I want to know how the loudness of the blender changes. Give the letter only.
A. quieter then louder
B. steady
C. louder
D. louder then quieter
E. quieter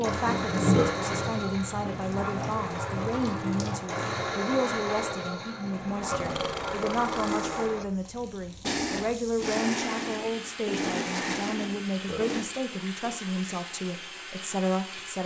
B.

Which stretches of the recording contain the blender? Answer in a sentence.
The blender can be heard from 0.0 to 12.4 s.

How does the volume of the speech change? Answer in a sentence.
The volume of the speech stays about the same.